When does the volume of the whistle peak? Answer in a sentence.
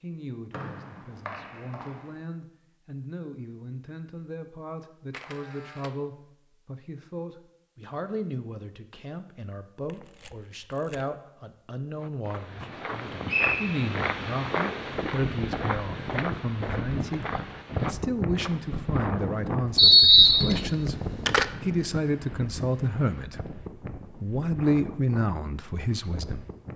The loudest moment of the whistle is at 20 seconds.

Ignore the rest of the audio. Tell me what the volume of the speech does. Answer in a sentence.
The loudness of the speech goes up.